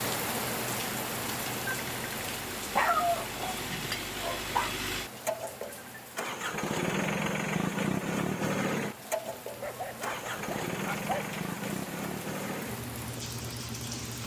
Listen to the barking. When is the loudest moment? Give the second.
3 s.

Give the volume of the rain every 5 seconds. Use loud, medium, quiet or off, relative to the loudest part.
loud, medium, medium.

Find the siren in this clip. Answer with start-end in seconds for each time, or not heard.
not heard.